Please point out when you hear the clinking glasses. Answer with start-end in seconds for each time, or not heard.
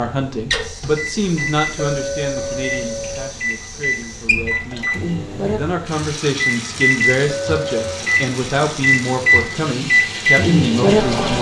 1.8-3.4, 7.2-8.1.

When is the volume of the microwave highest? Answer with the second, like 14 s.
10 s.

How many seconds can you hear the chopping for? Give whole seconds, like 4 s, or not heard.
not heard.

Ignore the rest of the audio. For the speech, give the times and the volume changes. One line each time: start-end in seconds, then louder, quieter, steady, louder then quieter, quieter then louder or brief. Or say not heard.
0.0-11.3 quieter then louder.